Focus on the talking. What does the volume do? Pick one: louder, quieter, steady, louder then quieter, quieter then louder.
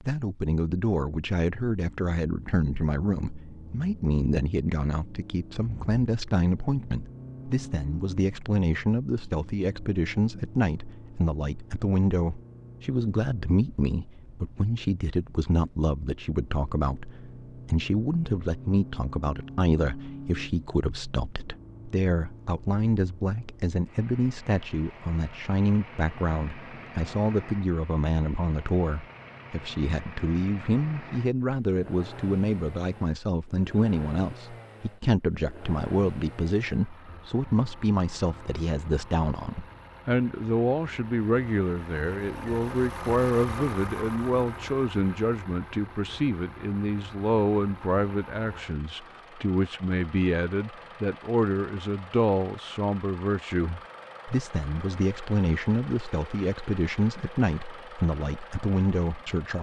steady.